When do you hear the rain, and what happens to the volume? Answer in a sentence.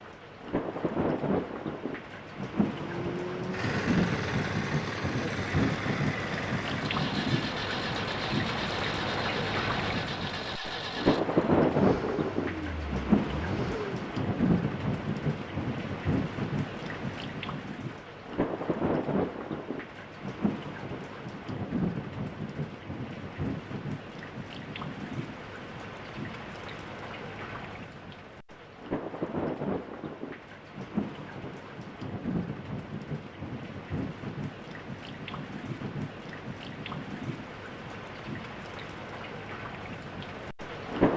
You can hear the rain from 0.0 to 41.1 s, getting quieter.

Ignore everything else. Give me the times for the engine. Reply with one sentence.
You can hear the engine from 2.7 to 14.0 s.